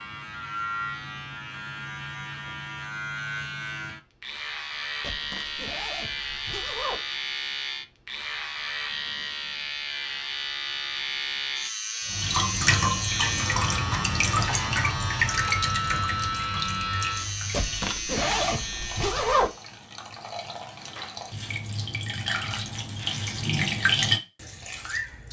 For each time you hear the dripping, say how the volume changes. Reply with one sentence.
The dripping can be heard from 12.1 to 25.2 s, getting quieter then louder.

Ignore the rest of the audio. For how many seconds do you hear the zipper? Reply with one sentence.
You can hear the zipper for 4 seconds altogether.